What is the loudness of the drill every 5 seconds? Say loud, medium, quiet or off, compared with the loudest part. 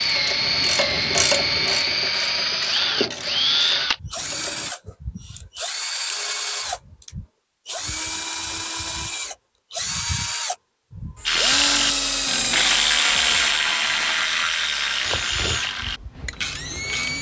loud, medium, loud, medium.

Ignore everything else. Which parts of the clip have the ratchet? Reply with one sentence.
The ratchet can be heard from 0.0 to 4.8 s and from 11.2 to 17.1 s.